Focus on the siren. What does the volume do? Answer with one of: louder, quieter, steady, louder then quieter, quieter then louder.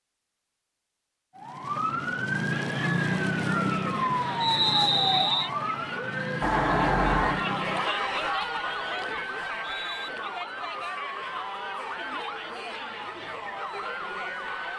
quieter.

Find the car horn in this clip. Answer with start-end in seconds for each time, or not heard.
6.4-7.5.